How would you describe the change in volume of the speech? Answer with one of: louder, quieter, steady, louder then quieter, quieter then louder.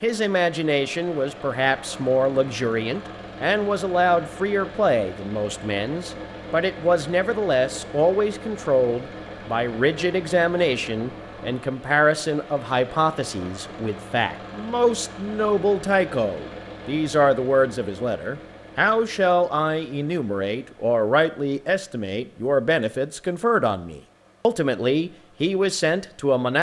steady.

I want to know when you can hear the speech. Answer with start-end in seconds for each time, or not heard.
0.0-26.5.